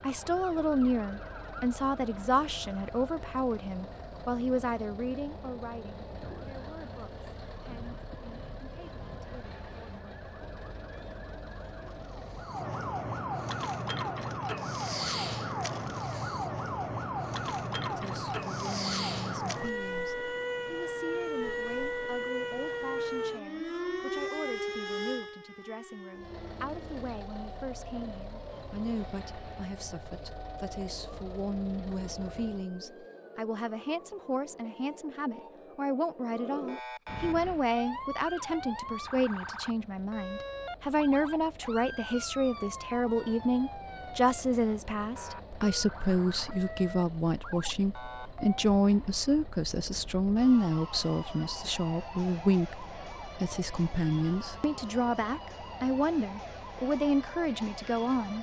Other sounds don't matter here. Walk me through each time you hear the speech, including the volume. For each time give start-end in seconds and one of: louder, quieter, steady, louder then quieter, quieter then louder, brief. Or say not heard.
0.0-10.1 quieter
17.9-58.3 louder.